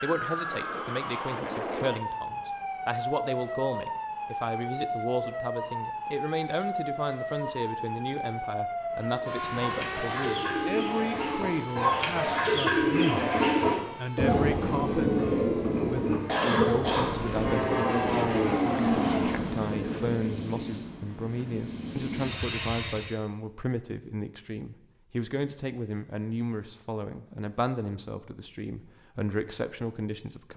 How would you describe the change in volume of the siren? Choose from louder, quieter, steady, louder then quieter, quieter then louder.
quieter.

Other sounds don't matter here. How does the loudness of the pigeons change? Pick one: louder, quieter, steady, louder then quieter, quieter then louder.
louder then quieter.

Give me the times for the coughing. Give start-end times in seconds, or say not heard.
16.2-17.1.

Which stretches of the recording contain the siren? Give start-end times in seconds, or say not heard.
0.0-18.6.